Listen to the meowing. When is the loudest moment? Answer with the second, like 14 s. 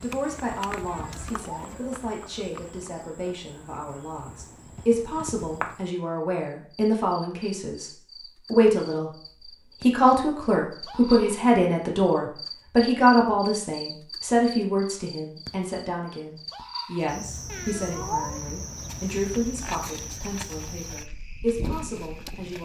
18 s.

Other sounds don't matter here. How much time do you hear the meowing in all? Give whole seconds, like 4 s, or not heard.
2 s.